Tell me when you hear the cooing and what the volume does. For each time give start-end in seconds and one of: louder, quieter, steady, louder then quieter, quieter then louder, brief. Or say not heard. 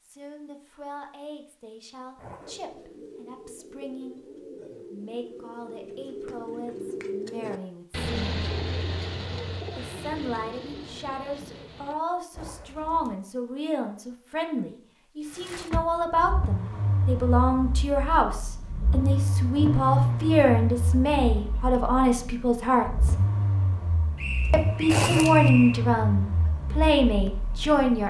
2.4-13.2 louder then quieter.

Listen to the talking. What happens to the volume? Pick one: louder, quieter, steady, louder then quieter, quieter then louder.
louder.